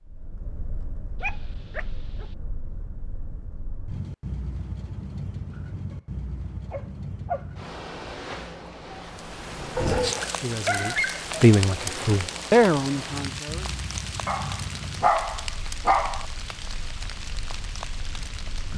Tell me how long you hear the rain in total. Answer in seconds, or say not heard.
10 s.